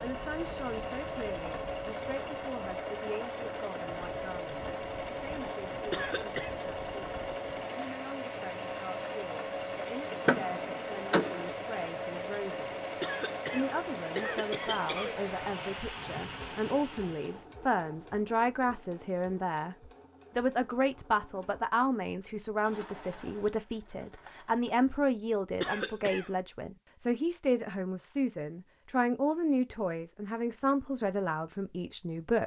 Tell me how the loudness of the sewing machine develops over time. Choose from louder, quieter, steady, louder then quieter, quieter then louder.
quieter.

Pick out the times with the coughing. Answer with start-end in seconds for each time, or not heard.
5.9-6.5, 13.0-15.2, 25.6-26.3.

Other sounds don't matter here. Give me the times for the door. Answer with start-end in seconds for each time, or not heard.
10.1-11.5.